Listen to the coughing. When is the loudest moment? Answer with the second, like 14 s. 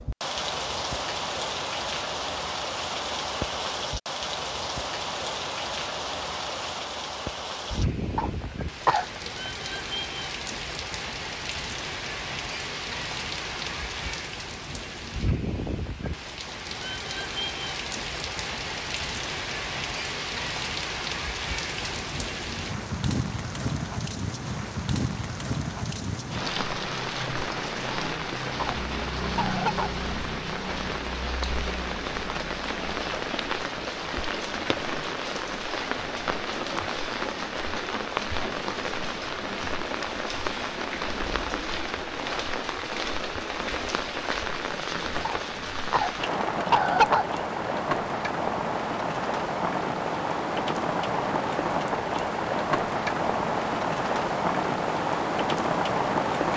47 s.